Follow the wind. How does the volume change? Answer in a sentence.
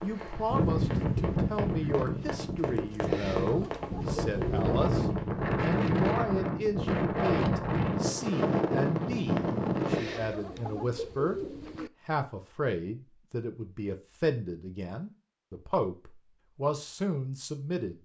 The volume of the wind goes down, then up.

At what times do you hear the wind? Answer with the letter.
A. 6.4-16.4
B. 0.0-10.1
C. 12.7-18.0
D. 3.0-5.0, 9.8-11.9
B.